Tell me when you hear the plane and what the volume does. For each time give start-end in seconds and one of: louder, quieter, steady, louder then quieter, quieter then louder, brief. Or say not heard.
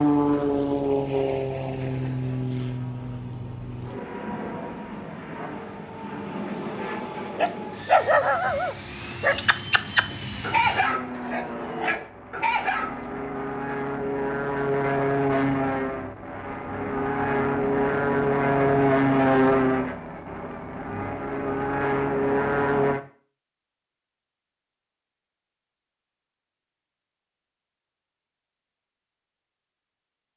0.0-23.0 quieter then louder.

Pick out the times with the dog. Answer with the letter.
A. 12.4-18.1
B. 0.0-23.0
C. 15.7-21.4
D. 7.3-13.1
D.